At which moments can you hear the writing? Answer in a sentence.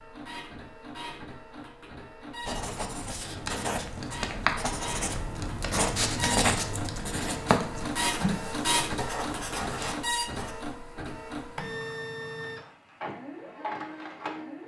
You can hear the writing from 2.4 to 10.6 s.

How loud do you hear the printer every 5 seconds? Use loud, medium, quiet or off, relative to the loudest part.
medium, loud, loud.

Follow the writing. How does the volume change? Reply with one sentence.
The volume of the writing goes up, then down.